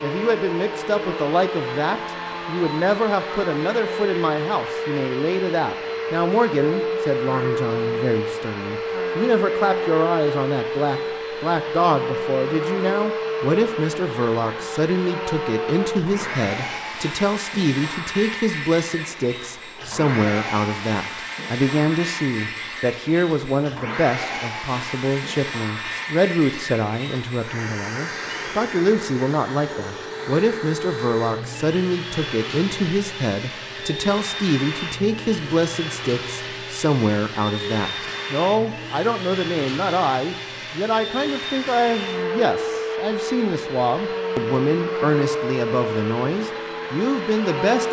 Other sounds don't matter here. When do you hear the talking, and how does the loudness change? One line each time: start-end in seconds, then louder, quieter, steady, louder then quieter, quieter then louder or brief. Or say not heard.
0.0-47.8 steady.